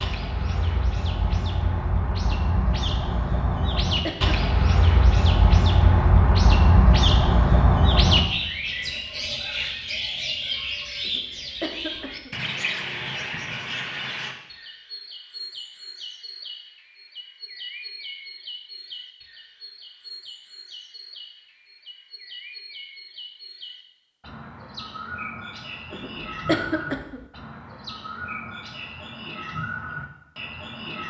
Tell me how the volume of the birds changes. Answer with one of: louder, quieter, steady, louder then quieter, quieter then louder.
quieter then louder.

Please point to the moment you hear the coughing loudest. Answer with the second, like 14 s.
27 s.